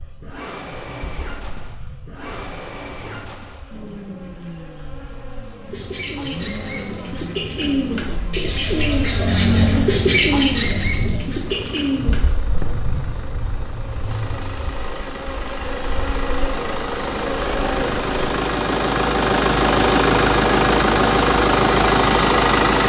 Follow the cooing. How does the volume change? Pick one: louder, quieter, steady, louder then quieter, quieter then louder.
louder then quieter.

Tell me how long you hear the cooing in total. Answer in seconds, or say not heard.
7 s.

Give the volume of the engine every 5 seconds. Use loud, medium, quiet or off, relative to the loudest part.
quiet, quiet, quiet, medium, loud.